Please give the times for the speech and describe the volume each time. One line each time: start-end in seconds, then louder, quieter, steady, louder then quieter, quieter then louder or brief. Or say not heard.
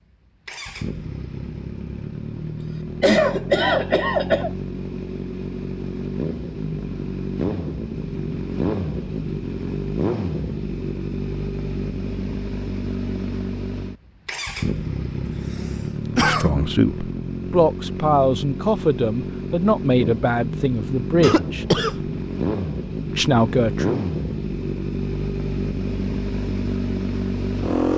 16.1-21.6 steady
23.1-24.1 brief.